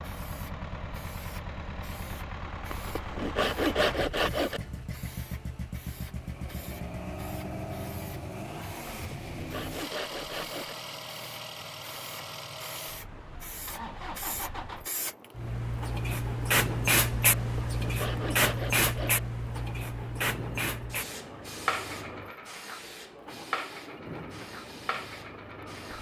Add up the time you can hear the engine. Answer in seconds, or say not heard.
26 s.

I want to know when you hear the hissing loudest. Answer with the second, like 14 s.
17 s.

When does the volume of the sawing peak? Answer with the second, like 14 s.
4 s.